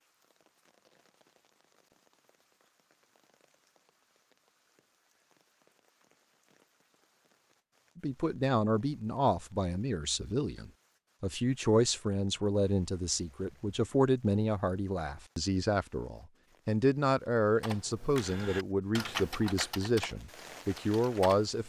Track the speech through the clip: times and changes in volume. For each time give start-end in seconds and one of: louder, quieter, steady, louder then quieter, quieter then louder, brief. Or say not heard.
8.0-21.6 steady.